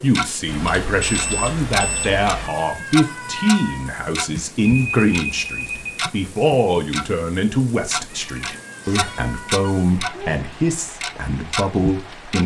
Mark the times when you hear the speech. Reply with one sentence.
You can hear the speech from 0.0 to 12.4 s.